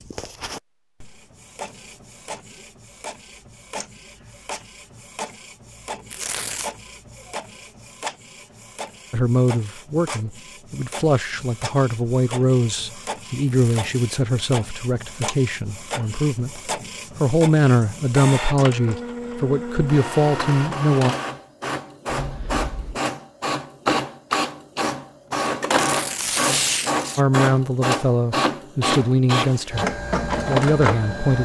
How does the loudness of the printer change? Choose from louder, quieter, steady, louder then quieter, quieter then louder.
louder.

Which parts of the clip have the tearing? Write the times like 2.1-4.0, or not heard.
6.1-6.7, 13.4-13.9, 25.7-27.2.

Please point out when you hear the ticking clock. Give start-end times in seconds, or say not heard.
not heard.